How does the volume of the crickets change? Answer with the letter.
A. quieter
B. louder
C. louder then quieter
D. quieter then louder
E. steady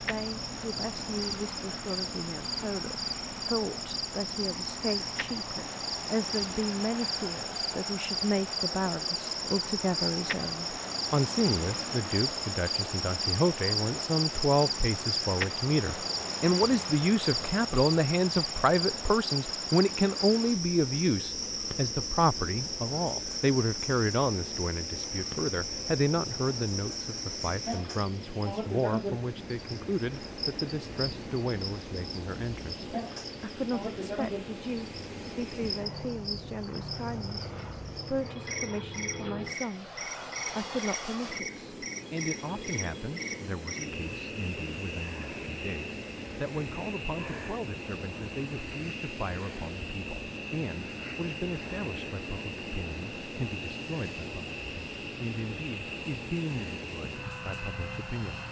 A.